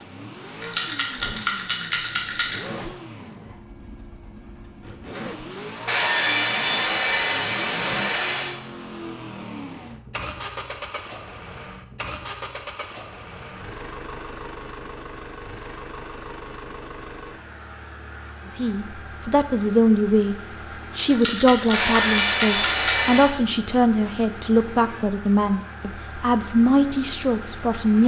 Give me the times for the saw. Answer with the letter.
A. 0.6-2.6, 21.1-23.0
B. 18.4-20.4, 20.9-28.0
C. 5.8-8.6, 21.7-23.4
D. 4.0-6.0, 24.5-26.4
C.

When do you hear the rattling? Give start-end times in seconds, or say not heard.
0.6-2.6, 21.1-23.0.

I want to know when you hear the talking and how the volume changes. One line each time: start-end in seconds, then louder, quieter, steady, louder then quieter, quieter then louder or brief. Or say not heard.
18.4-20.4 brief
20.9-28.0 steady.